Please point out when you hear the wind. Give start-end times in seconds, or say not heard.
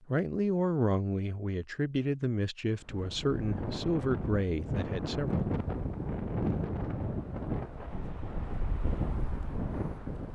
2.8-10.2.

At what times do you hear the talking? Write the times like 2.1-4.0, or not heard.
0.1-5.5.